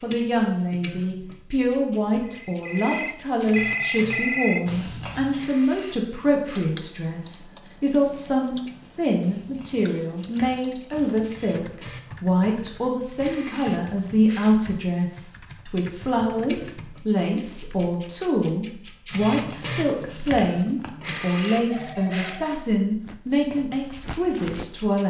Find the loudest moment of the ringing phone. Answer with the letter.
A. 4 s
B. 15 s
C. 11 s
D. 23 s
A.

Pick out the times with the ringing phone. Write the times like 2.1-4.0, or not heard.
2.2-4.7, 21.6-22.3.